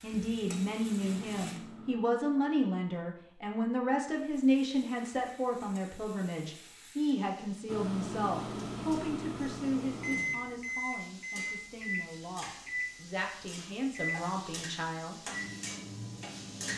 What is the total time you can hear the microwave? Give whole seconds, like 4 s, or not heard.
11 s.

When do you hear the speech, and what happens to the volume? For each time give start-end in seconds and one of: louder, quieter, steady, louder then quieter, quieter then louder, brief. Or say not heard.
0.0-15.2 quieter.